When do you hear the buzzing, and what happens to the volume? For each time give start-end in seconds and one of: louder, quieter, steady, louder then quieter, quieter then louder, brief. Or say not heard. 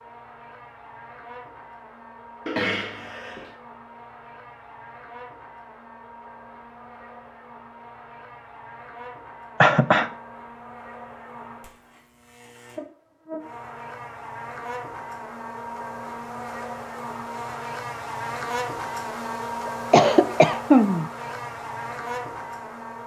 0.0-23.0 louder.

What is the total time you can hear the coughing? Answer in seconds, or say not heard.
3 s.